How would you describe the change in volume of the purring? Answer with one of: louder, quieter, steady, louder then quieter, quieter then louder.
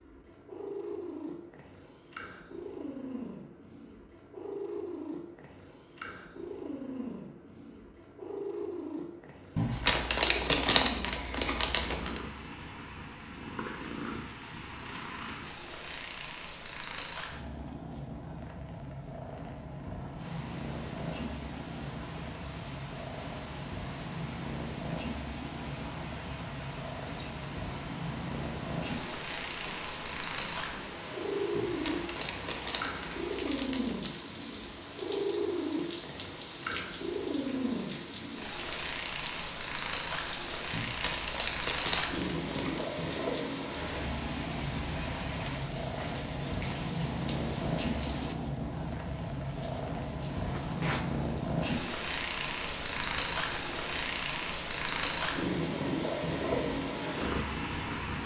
louder.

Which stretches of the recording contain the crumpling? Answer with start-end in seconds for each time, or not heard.
9.6-12.2, 31.6-34.1, 40.7-42.9.